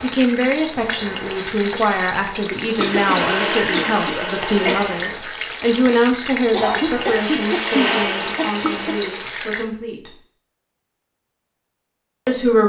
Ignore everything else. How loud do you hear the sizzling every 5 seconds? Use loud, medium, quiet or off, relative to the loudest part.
loud, loud, off.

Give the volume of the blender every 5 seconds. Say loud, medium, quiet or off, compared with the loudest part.
loud, loud, off.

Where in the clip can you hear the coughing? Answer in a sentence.
The coughing can be heard from 2.8 to 4.8 s and from 6.5 to 8.9 s.